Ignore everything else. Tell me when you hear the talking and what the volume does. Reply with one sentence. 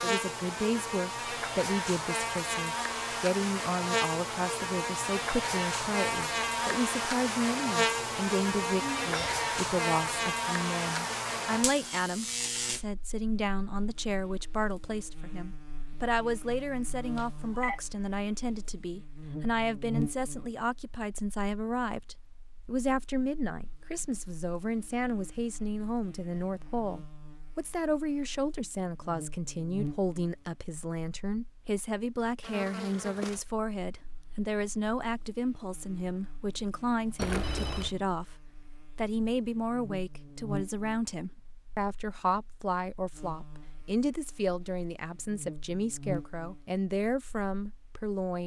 The talking can be heard from 0.0 to 48.4 s, at a steady volume.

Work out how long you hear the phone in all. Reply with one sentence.
You can hear the phone for 2 seconds altogether.